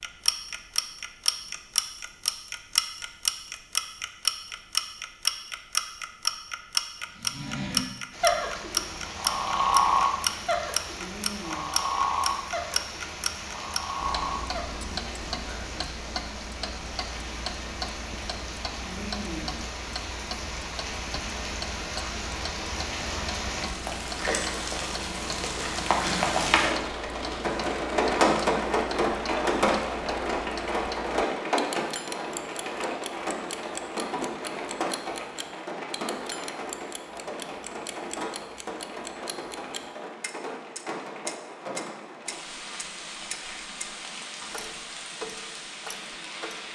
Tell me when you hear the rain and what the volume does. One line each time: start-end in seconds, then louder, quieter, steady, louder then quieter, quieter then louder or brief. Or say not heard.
8.1-46.7 louder then quieter.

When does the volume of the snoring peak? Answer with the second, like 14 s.
10 s.